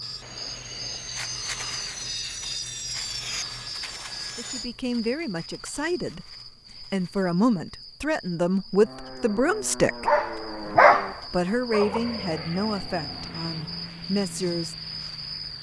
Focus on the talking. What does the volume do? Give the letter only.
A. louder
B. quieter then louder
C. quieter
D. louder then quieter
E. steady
D.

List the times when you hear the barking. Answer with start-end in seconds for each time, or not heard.
10.1-12.0.